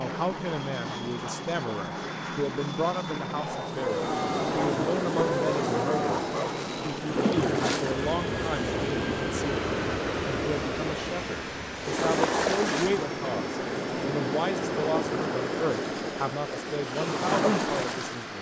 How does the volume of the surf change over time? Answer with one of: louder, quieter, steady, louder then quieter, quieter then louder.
steady.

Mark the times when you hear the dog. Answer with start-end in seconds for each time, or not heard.
3.8-6.6.